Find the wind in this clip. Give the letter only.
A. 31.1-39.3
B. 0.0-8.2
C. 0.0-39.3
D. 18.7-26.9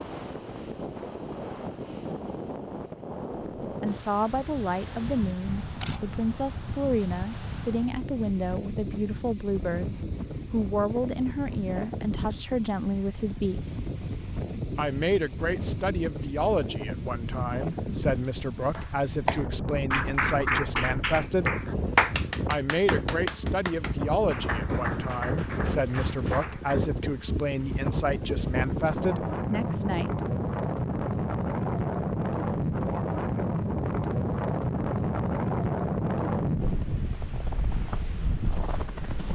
C.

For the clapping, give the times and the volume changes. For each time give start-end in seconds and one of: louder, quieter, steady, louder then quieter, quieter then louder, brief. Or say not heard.
18.7-26.9 quieter.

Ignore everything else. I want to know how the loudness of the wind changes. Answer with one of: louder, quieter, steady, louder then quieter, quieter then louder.
louder.